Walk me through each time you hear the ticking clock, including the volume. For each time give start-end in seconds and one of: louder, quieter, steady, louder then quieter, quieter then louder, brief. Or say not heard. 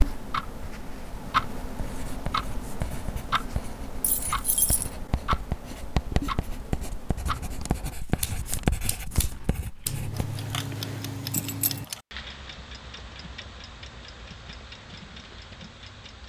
0.0-16.2 quieter.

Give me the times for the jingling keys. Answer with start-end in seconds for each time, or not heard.
4.0-4.9, 9.8-11.8.